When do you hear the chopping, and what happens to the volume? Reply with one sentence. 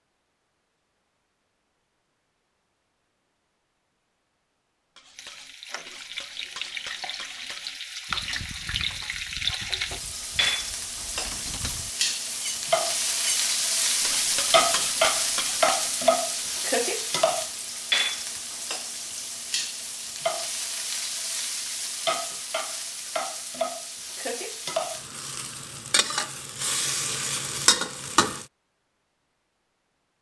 The chopping can't be heard in this clip.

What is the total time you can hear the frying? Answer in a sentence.
You can hear the frying for 23 seconds altogether.